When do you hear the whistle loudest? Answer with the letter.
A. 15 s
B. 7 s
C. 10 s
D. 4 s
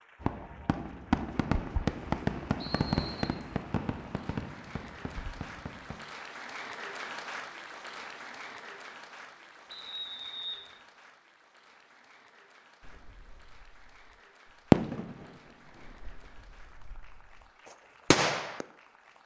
C.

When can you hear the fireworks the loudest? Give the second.
15 s.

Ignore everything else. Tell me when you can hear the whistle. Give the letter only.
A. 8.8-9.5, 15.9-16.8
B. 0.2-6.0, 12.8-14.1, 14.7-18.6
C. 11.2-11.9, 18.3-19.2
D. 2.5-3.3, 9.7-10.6
D.